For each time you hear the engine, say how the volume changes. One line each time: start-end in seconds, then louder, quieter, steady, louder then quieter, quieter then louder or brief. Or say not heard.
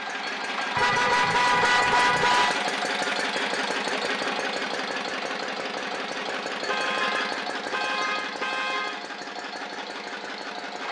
0.0-10.8 quieter.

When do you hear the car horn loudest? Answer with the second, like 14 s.
2 s.